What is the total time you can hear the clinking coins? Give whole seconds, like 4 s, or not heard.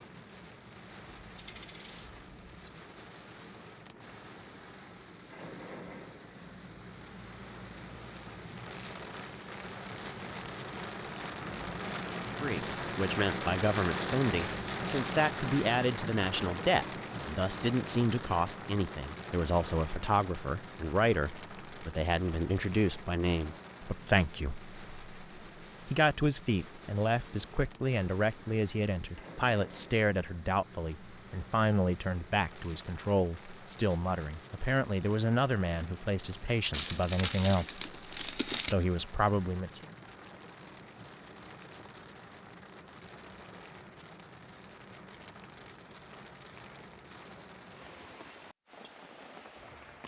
4 s.